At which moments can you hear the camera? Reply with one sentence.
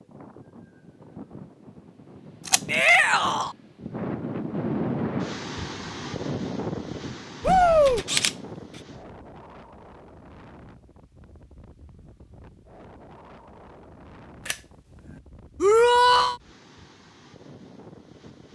You can hear the camera from 2.5 to 2.9 s, from 7.8 to 8.8 s and from 14.4 to 15.2 s.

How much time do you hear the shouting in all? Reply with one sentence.
You can hear the shouting for 2 seconds altogether.